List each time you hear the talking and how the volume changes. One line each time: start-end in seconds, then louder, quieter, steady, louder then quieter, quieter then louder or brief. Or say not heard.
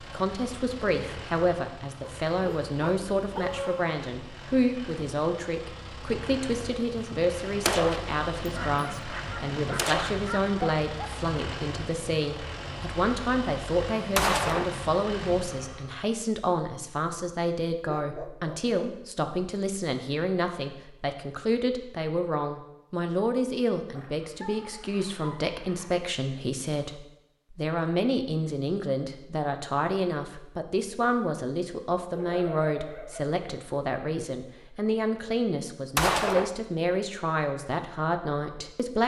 0.0-39.0 steady.